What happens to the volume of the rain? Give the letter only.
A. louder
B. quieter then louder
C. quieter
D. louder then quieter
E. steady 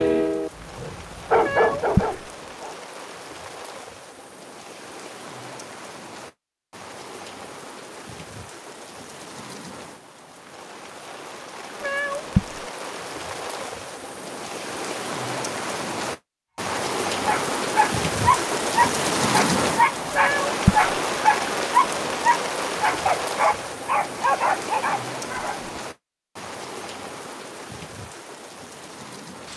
D.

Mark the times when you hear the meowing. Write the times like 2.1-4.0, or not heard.
1.4-2.2, 11.8-12.6, 20.1-20.9.